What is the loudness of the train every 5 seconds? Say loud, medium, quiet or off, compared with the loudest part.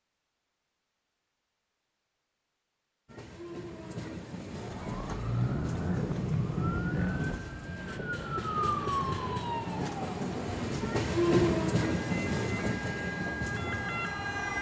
medium, medium, loud.